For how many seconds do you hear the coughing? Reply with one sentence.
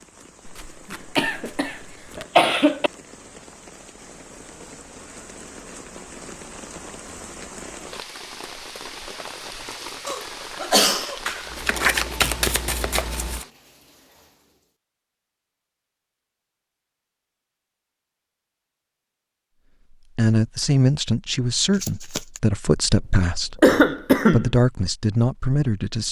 You can hear the coughing for 4 seconds altogether.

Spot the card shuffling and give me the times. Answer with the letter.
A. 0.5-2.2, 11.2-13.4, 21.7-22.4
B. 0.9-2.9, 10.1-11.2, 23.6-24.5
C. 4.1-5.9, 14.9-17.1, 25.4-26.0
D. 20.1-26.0
A.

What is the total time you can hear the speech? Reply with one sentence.
The speech can be heard for 6 seconds in total.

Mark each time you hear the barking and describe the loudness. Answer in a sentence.
You can't hear the barking here.